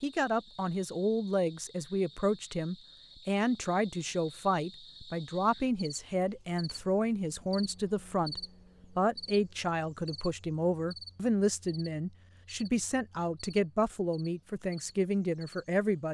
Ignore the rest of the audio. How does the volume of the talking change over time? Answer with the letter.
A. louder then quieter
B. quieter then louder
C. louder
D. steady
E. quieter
D.